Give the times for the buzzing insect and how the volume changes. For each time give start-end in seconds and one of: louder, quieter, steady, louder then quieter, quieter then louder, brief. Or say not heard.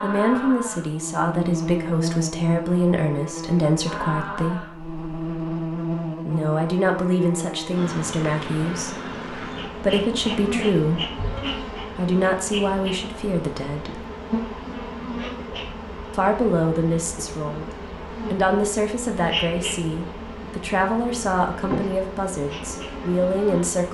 0.0-23.8 steady.